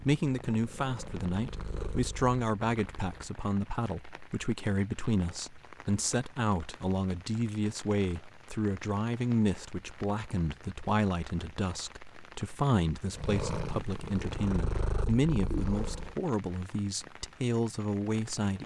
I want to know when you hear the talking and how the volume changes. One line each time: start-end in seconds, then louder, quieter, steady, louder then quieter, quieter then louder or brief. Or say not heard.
0.1-18.6 steady.